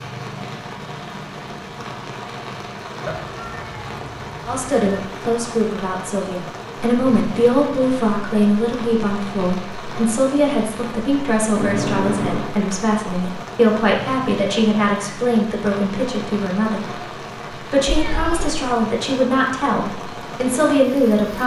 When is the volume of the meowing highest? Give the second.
12 s.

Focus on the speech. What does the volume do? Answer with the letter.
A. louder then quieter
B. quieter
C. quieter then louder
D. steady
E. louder
D.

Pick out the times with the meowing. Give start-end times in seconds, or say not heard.
3.0-5.0, 11.6-12.5, 17.9-18.6.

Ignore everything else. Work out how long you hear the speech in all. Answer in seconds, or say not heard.
16 s.